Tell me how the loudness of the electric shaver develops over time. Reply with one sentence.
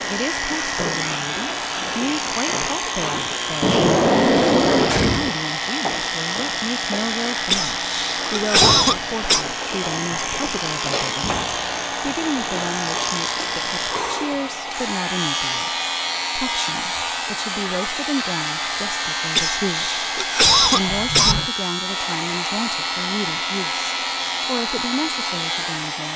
The volume of the electric shaver stays about the same.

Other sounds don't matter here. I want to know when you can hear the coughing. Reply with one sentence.
The coughing can be heard from 7.5 to 9.4 s and from 19.4 to 21.4 s.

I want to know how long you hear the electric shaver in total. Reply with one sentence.
You can hear the electric shaver for 26 seconds altogether.